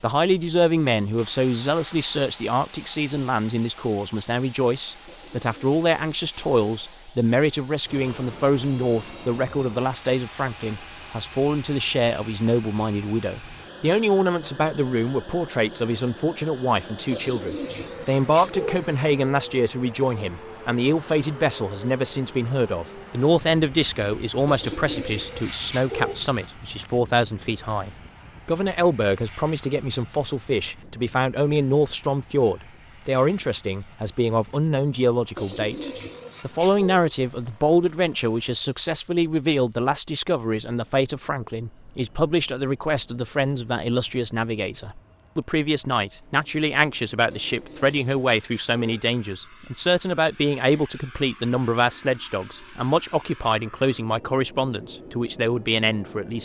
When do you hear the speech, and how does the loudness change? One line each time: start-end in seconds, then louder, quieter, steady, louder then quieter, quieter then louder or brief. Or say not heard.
0.0-56.4 steady.